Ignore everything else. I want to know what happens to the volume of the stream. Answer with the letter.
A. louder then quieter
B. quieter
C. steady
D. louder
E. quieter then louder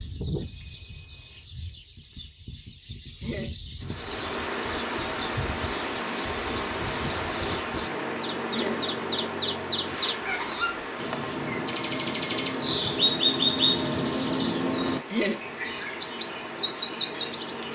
B.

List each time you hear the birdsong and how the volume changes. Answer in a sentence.
The birdsong can be heard from 0.0 to 17.7 s, getting louder.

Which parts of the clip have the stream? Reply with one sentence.
You can hear the stream from 3.8 to 17.7 s.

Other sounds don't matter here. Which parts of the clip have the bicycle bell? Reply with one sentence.
The bicycle bell can be heard from 0.4 to 1.4 s.